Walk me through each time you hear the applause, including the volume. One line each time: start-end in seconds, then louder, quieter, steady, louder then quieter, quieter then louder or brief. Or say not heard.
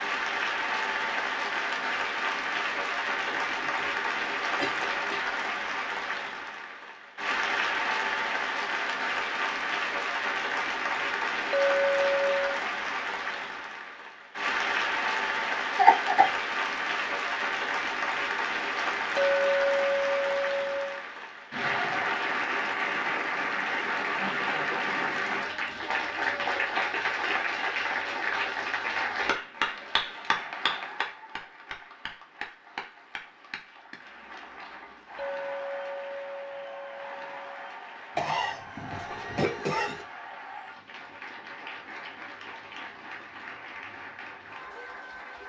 0.0-45.4 quieter.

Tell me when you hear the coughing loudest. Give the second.
16 s.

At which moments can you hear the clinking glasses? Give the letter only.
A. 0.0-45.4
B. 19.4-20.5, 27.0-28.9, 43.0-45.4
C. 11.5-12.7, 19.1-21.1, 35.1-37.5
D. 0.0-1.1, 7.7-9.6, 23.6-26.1
C.